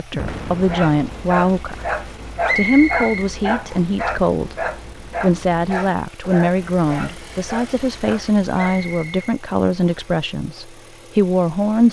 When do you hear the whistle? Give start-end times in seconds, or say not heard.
2.5-3.9, 8.6-10.1.